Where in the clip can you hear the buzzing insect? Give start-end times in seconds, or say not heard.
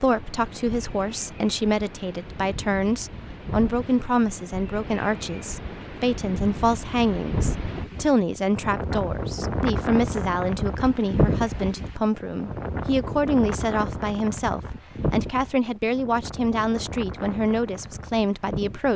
not heard.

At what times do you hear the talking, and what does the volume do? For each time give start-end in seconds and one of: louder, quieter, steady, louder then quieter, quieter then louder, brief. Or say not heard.
0.0-18.9 steady.